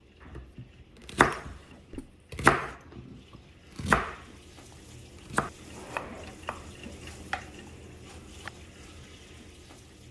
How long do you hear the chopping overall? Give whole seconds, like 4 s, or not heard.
5 s.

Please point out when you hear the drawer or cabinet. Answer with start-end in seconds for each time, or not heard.
1.4-2.1, 5.6-6.4.